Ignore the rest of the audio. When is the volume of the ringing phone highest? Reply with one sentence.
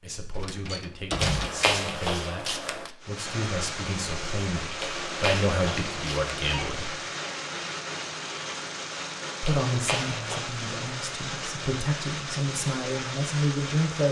The volume of the ringing phone peaks at 2 seconds.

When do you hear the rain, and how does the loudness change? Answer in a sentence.
The rain can be heard from 3.0 to 14.0 s, at a steady volume.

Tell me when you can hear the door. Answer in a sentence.
You can hear the door from 0.3 to 1.6 s.